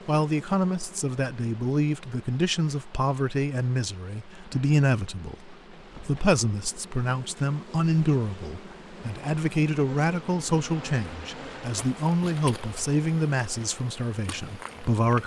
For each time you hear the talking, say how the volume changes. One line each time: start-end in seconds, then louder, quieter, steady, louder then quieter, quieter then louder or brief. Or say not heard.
0.1-15.2 steady.